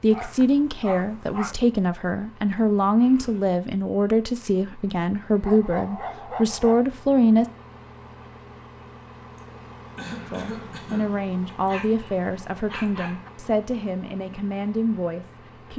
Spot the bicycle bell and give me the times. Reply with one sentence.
You can't hear the bicycle bell here.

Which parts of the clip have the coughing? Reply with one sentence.
The coughing can be heard from 9.6 to 11.6 s.